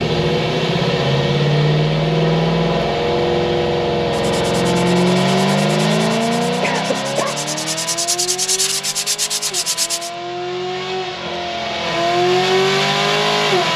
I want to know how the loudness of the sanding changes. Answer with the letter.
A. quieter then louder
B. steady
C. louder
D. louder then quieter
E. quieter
C.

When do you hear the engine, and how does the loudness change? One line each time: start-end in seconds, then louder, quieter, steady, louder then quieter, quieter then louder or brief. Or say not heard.
0.0-13.7 quieter then louder.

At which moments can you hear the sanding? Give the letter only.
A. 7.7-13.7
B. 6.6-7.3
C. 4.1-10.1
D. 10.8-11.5
C.